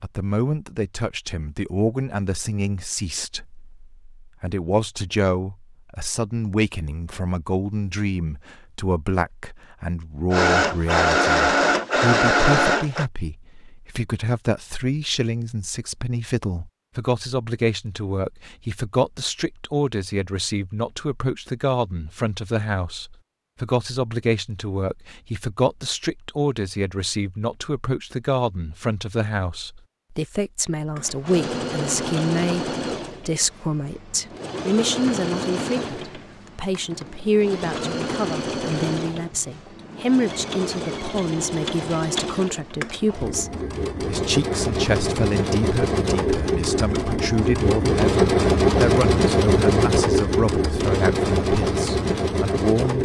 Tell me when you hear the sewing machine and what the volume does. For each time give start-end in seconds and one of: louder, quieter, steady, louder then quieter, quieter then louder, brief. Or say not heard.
10.3-13.1 brief
30.9-52.9 louder.